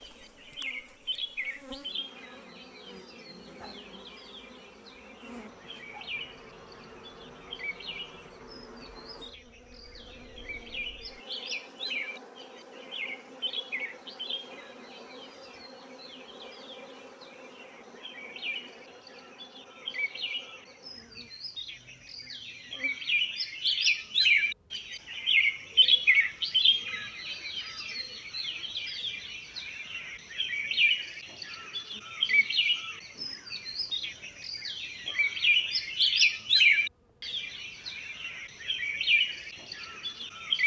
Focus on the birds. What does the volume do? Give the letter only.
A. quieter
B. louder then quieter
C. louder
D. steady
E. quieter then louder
C.